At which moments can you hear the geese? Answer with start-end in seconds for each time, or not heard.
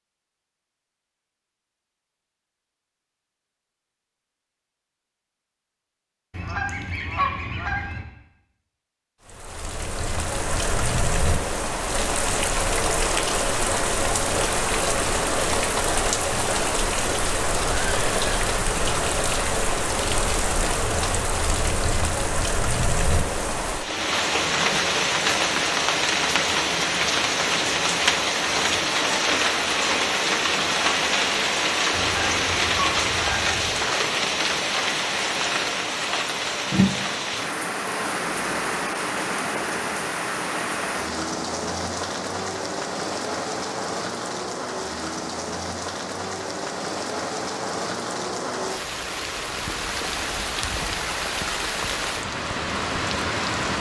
6.3-8.1, 31.9-33.9.